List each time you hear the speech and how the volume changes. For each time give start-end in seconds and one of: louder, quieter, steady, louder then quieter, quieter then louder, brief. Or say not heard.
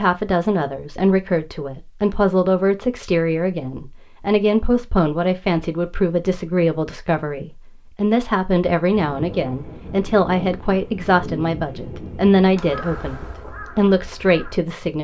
0.0-14.9 steady.